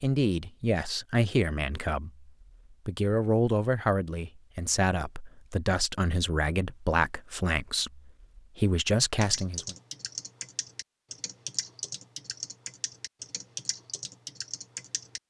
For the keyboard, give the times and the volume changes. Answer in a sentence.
You can hear the keyboard from 9.2 to 15.2 s, at a steady volume.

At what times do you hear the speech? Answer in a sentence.
The speech can be heard from 0.0 to 9.8 s.